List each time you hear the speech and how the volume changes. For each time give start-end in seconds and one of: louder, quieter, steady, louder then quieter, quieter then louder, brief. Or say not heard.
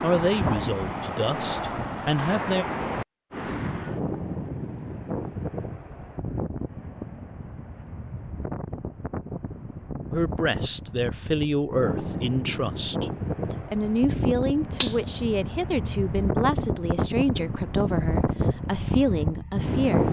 0.0-2.6 brief
10.1-20.0 steady.